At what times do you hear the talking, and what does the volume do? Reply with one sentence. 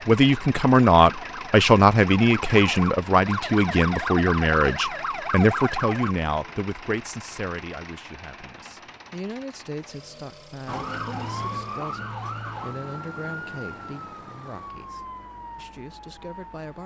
The talking can be heard from 0.1 to 16.8 s, getting quieter.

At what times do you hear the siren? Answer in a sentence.
You can hear the siren from 0.2 to 6.2 s and from 10.7 to 16.8 s.